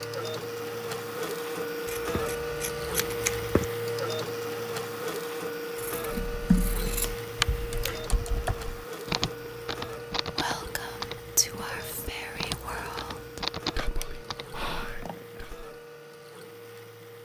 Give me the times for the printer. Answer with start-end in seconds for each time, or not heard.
0.0-17.2.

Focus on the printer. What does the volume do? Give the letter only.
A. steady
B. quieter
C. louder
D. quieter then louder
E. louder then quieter
B.